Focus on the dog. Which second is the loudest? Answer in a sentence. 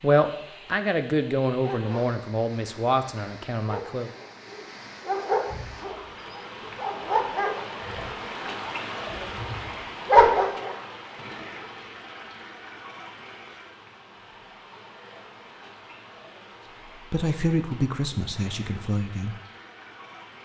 The volume of the dog peaks at 10 seconds.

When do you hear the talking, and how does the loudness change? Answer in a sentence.
You can hear the talking from 0.0 to 4.1 s, getting quieter; and briefly from 17.1 to 19.4 s.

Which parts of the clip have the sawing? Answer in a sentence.
You can't hear the sawing here.